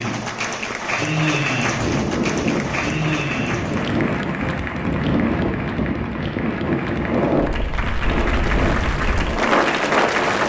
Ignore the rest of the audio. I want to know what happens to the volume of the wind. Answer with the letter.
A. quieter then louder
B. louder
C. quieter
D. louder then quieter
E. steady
E.